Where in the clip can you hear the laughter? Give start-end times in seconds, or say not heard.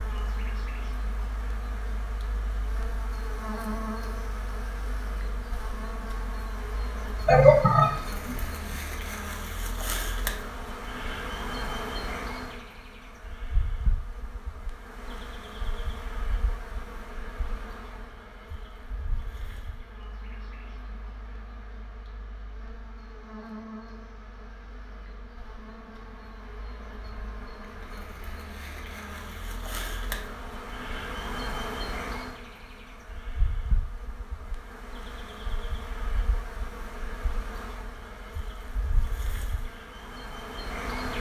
7.2-8.3.